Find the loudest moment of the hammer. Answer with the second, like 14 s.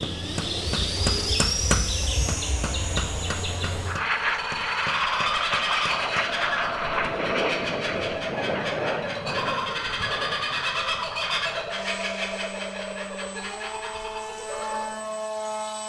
2 s.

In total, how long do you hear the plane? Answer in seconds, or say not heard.
16 s.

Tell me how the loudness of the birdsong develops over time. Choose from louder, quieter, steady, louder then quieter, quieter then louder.
louder then quieter.